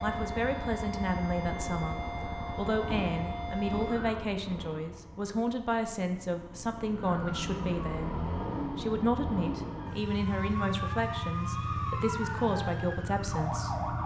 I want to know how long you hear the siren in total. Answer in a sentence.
The siren can be heard for 11 seconds in total.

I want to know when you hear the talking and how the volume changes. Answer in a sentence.
The talking can be heard from 0.0 to 13.8 s, at a steady volume.